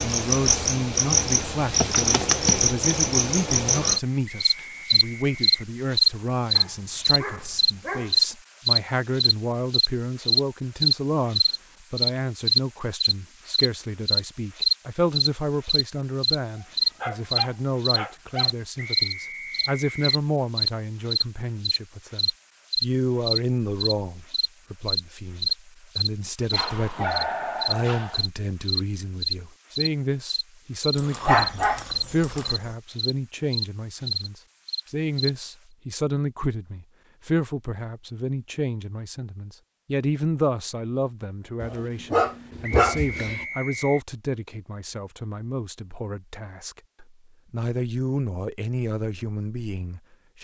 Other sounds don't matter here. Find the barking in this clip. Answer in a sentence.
You can hear the barking from 6.5 to 8.2 s, from 16.6 to 18.6 s, from 26.5 to 28.2 s, from 30.9 to 32.7 s and from 41.6 to 43.5 s.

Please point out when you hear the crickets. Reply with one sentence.
You can hear the crickets from 0.0 to 35.3 s.